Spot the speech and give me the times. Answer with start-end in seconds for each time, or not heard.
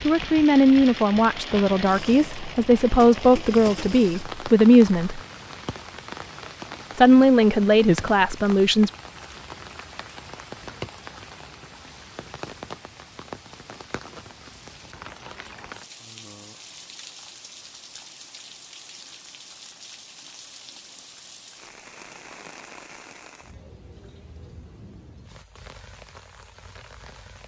0.0-5.2, 7.0-8.9.